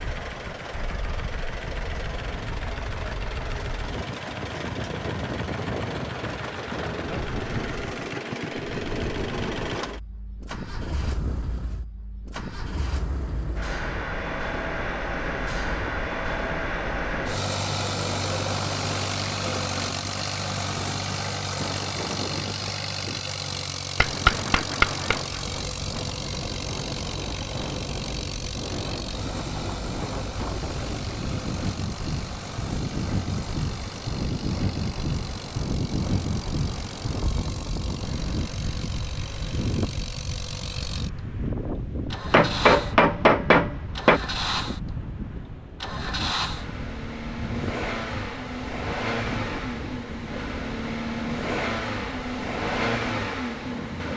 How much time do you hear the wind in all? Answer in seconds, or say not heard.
54 s.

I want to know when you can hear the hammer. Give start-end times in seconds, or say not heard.
24.0-25.2, 42.3-44.2.